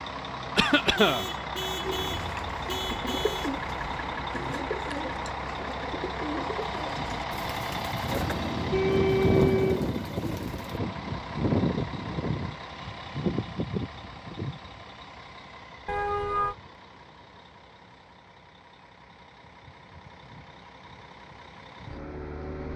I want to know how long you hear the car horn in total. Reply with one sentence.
The car horn can be heard for 5 seconds in total.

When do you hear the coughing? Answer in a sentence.
The coughing can be heard from 0.6 to 1.2 s.